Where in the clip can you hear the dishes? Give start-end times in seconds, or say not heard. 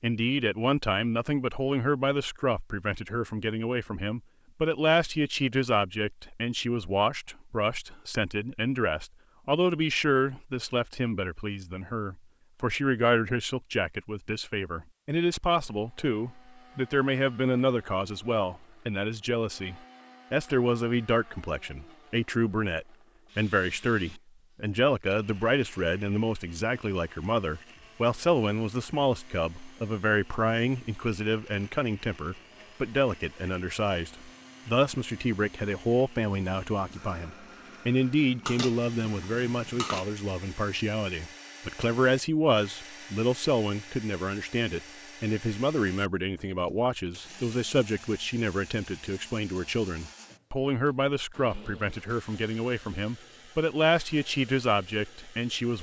38.5-40.0.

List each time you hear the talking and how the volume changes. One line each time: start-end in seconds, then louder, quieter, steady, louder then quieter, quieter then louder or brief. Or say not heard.
0.0-55.7 steady.